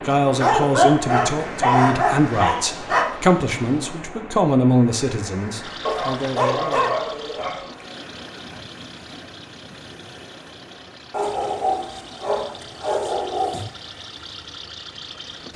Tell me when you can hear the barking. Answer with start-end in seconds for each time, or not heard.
0.3-3.0, 5.8-7.7, 11.1-13.7.